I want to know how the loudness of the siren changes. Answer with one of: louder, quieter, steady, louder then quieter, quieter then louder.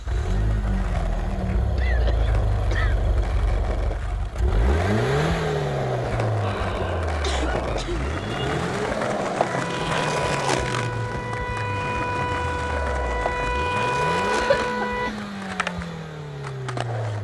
louder.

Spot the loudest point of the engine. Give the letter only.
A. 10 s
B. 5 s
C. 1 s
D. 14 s
B.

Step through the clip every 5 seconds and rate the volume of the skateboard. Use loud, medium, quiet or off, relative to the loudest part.
medium, loud, loud, medium.